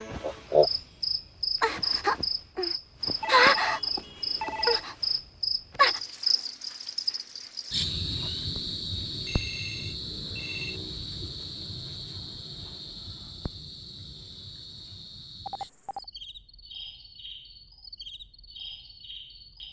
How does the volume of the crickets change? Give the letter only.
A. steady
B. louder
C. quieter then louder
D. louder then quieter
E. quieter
E.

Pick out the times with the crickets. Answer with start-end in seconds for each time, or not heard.
0.0-19.6.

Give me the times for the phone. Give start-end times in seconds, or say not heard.
3.2-4.8, 9.2-10.8, 15.4-16.1.